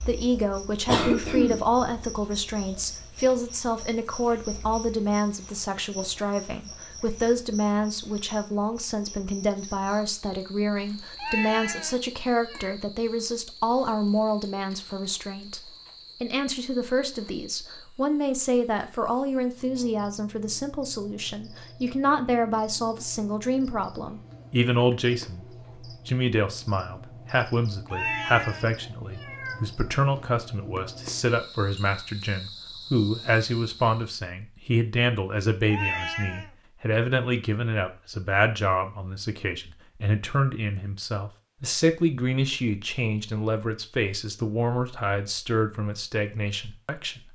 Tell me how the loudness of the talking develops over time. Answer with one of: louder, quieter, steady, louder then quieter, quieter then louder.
steady.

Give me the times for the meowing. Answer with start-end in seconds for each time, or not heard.
11.2-12.8, 27.9-29.6, 35.7-36.5.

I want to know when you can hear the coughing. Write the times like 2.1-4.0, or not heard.
0.8-2.0.